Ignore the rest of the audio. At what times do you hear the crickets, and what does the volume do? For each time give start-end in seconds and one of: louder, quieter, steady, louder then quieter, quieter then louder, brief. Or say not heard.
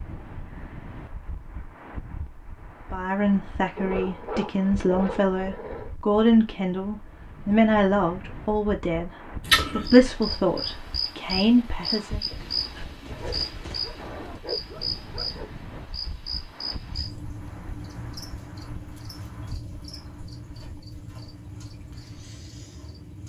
9.4-23.2 quieter.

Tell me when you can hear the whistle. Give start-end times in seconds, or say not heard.
not heard.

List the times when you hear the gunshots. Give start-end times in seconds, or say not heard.
12.4-14.4.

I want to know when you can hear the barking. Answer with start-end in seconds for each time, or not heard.
3.8-6.0, 13.1-15.8.